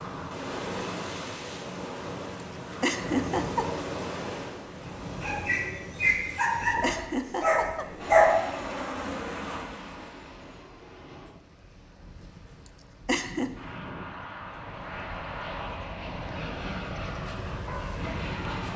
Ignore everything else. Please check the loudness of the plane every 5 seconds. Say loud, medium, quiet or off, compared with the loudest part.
off, loud, medium, loud.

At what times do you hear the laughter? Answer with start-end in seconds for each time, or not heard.
2.8-3.8, 6.8-7.8, 13.1-13.5.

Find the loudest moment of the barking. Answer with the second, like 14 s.
8 s.